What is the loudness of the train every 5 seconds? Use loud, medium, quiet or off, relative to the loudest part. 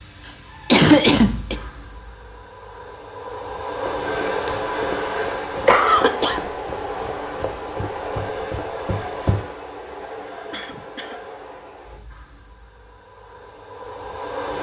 loud, loud, medium.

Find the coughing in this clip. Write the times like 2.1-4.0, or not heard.
0.2-1.6, 5.0-6.5, 10.5-11.2.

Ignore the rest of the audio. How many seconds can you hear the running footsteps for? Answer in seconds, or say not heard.
6 s.